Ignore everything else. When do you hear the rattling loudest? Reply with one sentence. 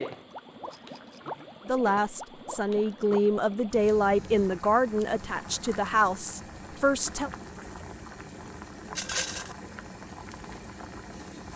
The loudest moment of the rattling is at 9 seconds.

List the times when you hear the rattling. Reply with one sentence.
You can hear the rattling from 0.7 to 1.2 s and from 8.9 to 9.6 s.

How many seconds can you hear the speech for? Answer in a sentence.
You can hear the speech for 6 seconds altogether.